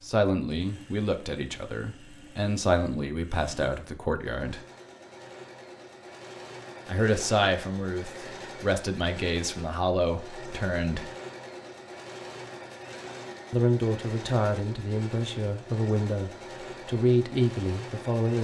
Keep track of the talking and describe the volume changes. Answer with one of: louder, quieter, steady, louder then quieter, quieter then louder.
steady.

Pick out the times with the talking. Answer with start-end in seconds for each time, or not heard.
0.0-4.6, 6.8-11.1, 13.5-18.3.